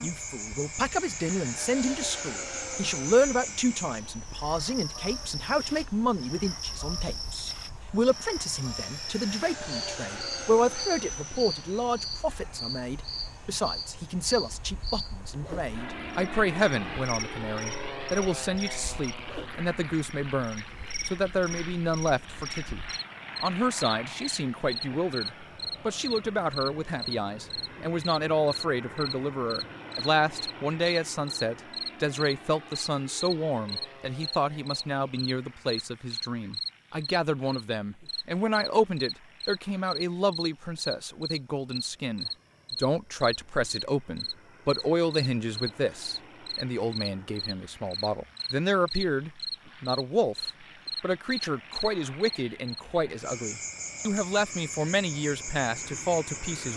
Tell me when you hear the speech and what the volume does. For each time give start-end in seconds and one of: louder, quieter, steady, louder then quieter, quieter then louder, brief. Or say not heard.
0.0-56.7 steady.